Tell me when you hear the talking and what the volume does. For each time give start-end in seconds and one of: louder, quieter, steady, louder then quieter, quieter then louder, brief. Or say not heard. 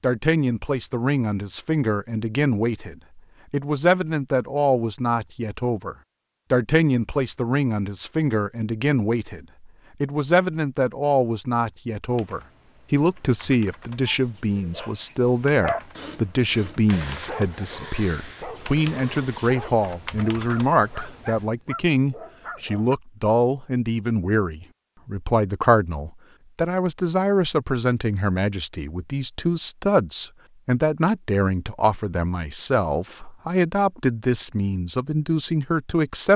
0.0-36.3 steady.